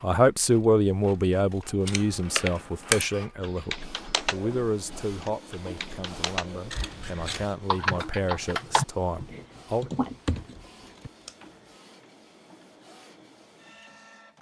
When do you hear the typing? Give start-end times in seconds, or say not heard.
1.9-11.1.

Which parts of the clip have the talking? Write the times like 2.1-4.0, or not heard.
0.0-9.9.